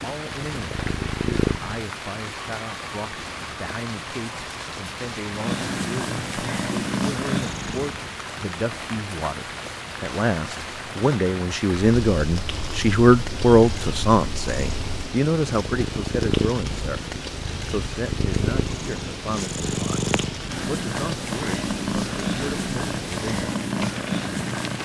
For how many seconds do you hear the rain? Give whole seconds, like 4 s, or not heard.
25 s.